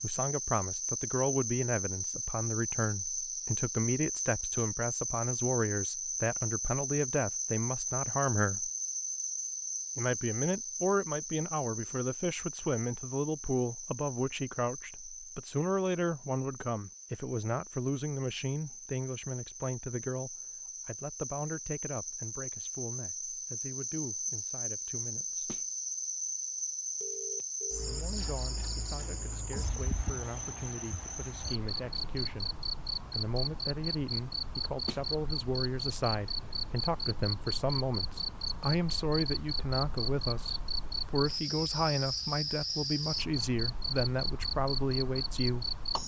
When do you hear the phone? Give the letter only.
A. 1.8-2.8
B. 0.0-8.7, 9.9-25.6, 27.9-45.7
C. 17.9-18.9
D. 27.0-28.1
D.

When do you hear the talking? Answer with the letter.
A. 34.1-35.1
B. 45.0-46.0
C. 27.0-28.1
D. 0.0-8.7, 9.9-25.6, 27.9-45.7
D.